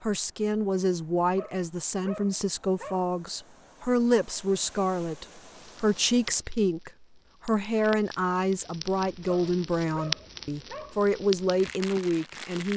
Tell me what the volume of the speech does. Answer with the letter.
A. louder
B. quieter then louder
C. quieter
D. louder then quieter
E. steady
E.